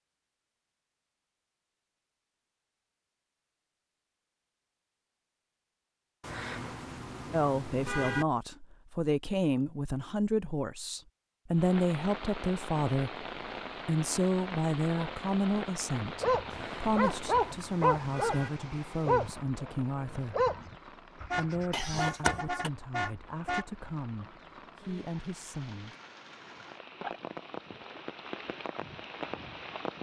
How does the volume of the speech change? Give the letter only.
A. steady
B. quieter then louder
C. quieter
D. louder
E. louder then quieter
C.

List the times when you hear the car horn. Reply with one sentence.
The car horn can be heard from 6.2 to 8.2 s, from 16.5 to 18.5 s and from 21.3 to 23.6 s.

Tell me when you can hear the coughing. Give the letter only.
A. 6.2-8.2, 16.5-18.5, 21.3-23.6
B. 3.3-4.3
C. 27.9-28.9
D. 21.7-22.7
D.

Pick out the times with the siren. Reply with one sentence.
You can't hear the siren here.